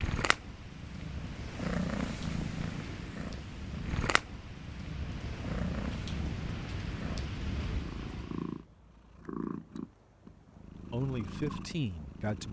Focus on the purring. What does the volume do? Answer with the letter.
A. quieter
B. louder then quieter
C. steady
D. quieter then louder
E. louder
A.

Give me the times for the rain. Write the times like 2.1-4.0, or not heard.
0.2-8.6.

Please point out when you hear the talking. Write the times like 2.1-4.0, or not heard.
10.9-12.4.